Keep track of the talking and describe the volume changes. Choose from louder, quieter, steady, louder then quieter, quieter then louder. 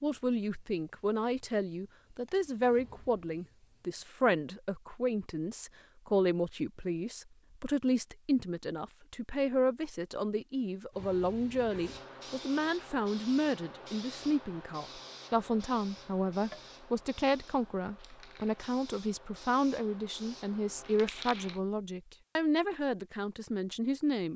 steady.